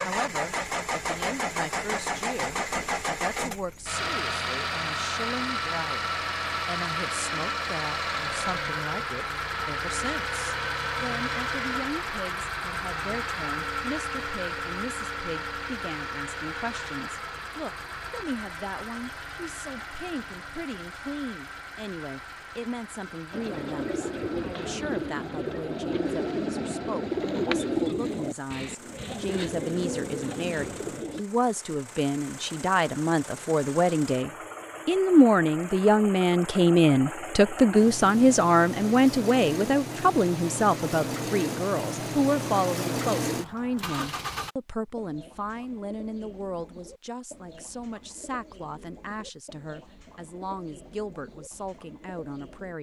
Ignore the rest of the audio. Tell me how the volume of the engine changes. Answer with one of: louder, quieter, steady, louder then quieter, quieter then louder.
quieter then louder.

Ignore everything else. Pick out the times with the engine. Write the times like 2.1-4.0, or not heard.
0.0-44.5.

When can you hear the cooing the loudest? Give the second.
28 s.